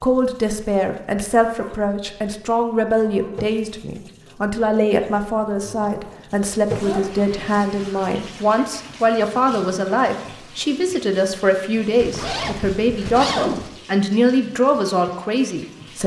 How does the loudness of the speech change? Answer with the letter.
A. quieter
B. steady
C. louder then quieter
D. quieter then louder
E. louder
B.